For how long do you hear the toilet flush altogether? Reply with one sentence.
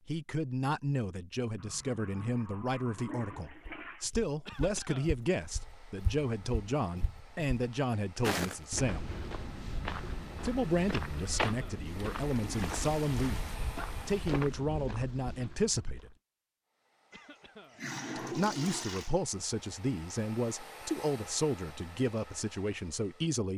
You can hear the toilet flush for 6 seconds altogether.